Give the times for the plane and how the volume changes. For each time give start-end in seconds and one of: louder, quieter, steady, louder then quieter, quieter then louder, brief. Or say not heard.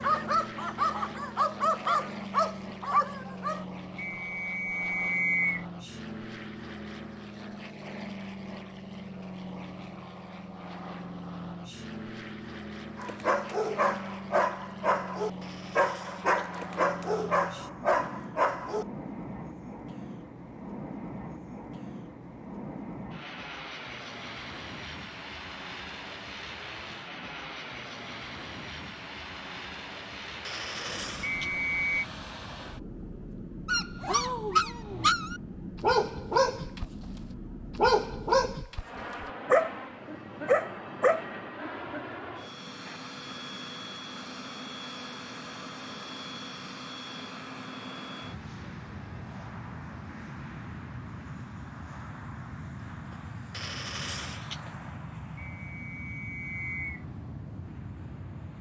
0.0-58.5 steady.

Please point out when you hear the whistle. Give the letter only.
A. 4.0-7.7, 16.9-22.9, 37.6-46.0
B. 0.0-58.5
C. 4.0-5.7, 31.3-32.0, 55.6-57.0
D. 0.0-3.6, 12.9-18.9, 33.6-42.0
C.